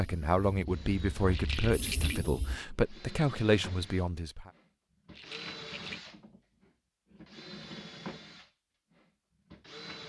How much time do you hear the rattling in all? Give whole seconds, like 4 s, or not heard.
2 s.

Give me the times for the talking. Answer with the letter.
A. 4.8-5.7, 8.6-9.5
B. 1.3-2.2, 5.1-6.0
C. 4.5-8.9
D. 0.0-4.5
D.